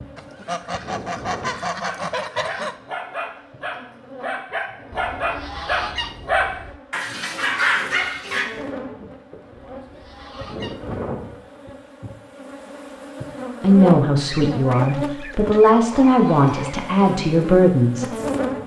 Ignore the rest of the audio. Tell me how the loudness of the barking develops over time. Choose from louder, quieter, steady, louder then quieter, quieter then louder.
louder.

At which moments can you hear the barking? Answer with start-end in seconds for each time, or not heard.
1.9-8.4.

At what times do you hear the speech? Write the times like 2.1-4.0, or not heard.
13.6-18.1.